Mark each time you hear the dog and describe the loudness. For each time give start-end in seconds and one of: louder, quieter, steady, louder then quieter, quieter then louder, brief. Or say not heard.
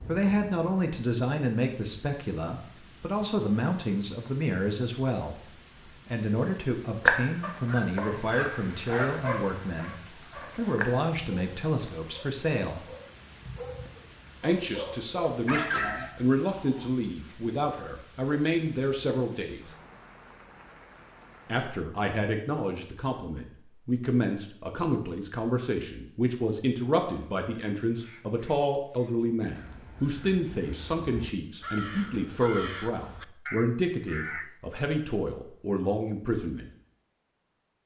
7.0-17.4 quieter then louder.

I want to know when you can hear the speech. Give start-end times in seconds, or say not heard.
0.1-12.9, 14.4-19.7, 21.4-36.7.